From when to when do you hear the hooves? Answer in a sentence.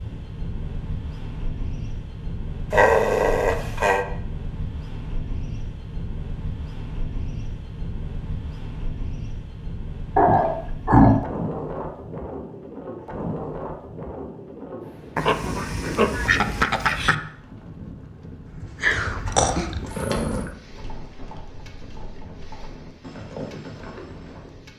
You can hear the hooves from 18.4 to 24.6 s.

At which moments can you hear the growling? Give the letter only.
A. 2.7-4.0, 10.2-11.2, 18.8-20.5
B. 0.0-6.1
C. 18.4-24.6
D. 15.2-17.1
A.